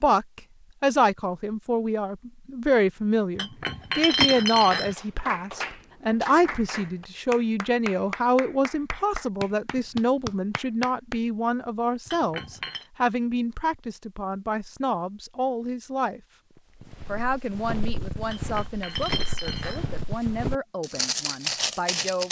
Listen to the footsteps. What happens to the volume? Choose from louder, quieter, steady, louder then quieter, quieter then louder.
louder.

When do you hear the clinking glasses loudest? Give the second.
4 s.